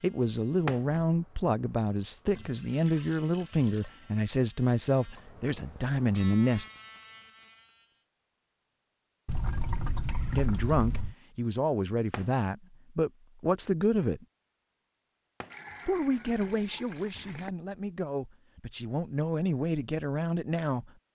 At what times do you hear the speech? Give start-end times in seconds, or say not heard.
0.0-6.7, 10.3-14.2, 15.8-20.9.